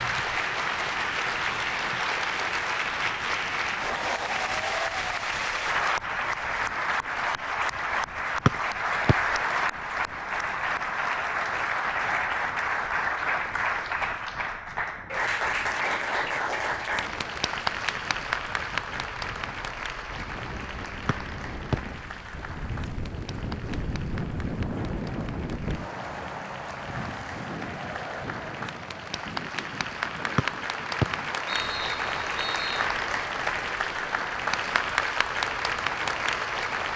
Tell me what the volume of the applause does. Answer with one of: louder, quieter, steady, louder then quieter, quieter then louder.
quieter then louder.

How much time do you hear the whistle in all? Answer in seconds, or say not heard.
4 s.